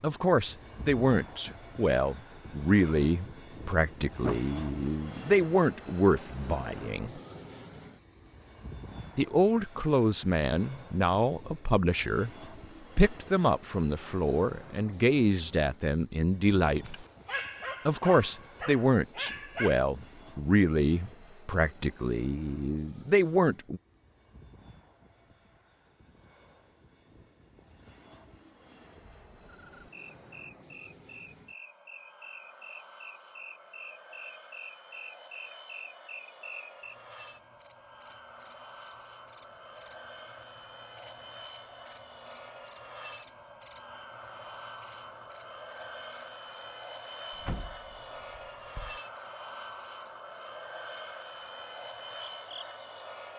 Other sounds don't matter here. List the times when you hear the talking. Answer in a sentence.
You can hear the talking from 0.0 to 7.1 s, from 9.2 to 12.3 s, from 12.9 to 16.9 s and from 17.9 to 23.8 s.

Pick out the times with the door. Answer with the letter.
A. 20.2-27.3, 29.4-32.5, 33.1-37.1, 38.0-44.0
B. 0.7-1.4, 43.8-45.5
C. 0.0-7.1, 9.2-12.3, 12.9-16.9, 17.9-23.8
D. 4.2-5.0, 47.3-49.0
D.